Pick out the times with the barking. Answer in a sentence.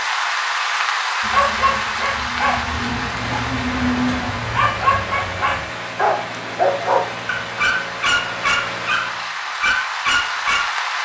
You can hear the barking from 1.2 to 10.7 s.